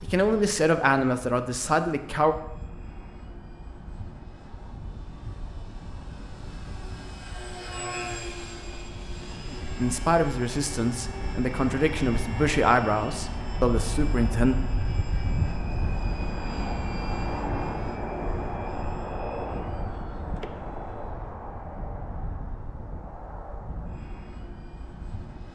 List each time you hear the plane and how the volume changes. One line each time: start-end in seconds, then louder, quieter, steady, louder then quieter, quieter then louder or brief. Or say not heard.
0.0-25.5 louder then quieter.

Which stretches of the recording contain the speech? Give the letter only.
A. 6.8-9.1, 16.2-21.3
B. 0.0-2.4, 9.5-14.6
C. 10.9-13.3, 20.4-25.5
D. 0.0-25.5
B.